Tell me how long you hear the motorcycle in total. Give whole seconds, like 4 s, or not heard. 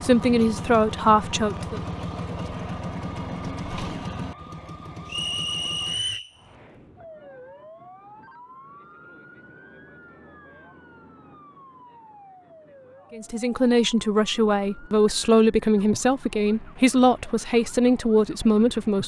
6 s.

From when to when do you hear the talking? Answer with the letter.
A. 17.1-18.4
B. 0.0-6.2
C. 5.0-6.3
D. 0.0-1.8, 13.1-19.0
D.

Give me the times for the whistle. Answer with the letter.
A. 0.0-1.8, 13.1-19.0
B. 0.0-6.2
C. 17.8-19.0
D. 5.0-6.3
D.